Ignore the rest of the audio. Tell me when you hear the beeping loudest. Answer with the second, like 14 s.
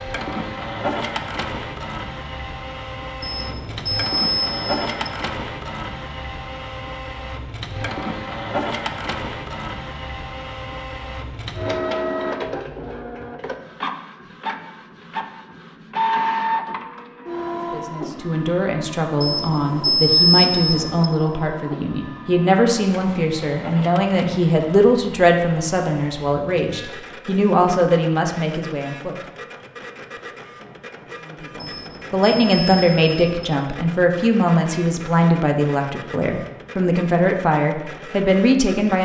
20 s.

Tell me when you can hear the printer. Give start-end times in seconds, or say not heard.
0.0-39.0.